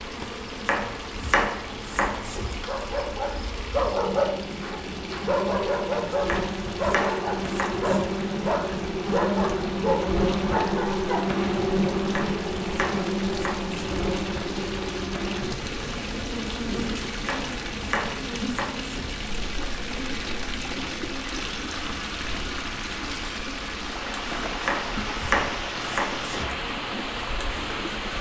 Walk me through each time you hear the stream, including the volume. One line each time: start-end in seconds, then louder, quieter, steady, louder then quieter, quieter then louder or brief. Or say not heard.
0.0-28.1 louder.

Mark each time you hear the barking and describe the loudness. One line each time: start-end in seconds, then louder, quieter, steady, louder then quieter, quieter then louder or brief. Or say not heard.
2.6-11.2 steady.